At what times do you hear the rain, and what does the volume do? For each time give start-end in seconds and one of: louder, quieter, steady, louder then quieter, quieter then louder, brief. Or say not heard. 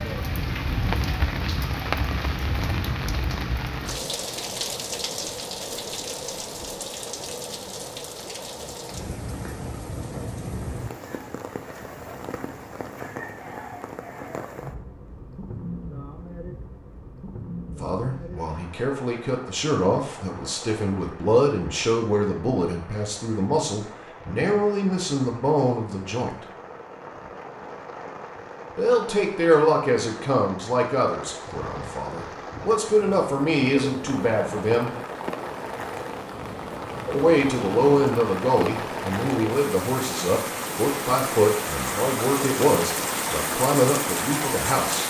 0.0-45.0 quieter then louder.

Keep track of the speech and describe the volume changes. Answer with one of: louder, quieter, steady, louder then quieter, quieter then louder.
steady.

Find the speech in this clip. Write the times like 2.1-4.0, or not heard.
17.6-26.4, 28.8-34.9, 37.1-45.0.